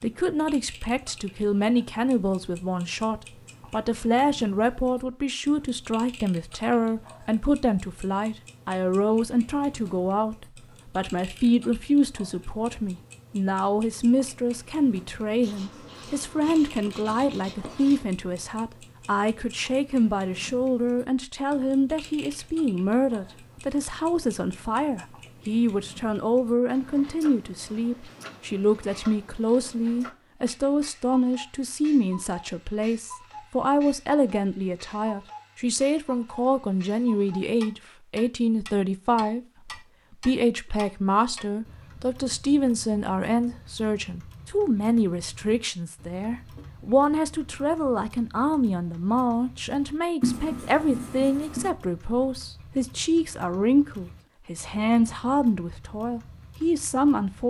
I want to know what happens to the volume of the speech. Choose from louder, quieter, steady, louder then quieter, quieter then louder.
steady.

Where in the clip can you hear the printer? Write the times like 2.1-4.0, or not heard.
not heard.